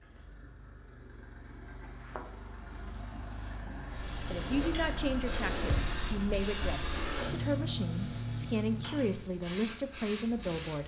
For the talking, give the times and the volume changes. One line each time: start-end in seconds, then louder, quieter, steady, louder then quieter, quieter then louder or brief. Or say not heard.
4.2-10.8 steady.